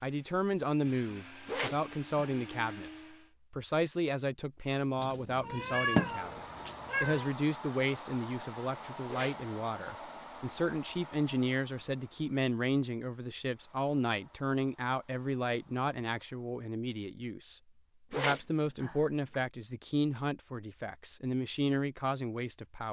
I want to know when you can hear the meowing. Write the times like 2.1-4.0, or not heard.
5.0-7.3.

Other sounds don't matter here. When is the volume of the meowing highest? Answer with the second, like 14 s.
6 s.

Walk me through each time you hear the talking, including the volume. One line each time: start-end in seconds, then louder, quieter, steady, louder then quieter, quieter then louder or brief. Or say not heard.
0.0-2.9 brief
3.5-22.8 steady.